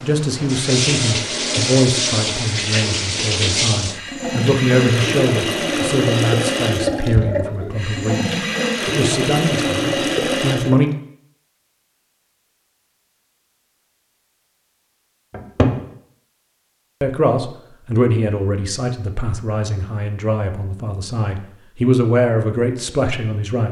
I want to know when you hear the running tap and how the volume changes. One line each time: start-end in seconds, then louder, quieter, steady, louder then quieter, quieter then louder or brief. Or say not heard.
0.0-10.9 steady.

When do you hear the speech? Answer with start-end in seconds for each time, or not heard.
0.0-10.9, 17.0-23.6.